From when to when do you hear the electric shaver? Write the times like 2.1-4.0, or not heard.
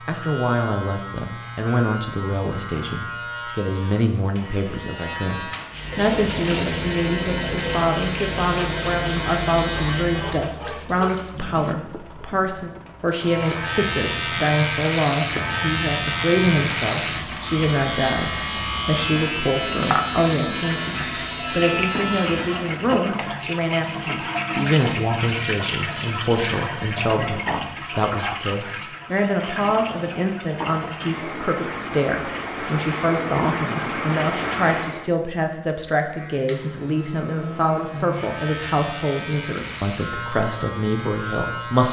0.0-10.6, 13.2-22.8, 36.0-41.8.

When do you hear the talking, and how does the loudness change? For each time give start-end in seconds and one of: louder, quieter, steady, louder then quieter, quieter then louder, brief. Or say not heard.
0.1-41.8 steady.